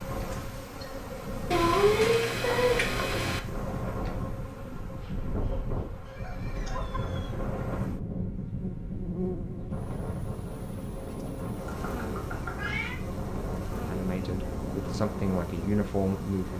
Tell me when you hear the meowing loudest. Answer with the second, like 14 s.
2 s.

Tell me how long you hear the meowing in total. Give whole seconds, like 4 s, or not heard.
4 s.